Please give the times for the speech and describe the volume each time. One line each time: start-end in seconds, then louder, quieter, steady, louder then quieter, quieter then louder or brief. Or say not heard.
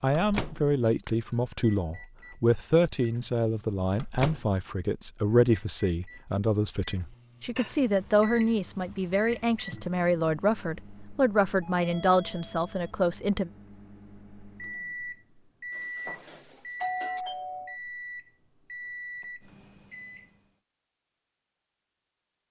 0.0-13.5 steady.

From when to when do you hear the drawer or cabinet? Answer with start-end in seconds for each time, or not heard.
not heard.